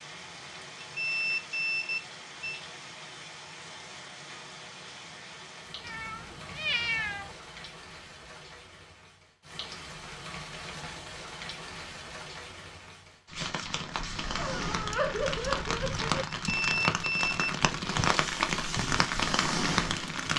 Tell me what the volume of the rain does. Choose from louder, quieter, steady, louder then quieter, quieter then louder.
louder.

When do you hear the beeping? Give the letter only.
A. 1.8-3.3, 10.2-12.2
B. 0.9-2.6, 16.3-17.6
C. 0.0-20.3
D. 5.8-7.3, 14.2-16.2
B.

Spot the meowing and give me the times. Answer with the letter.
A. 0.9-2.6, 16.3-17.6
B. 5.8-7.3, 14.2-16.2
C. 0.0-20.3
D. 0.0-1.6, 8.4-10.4
B.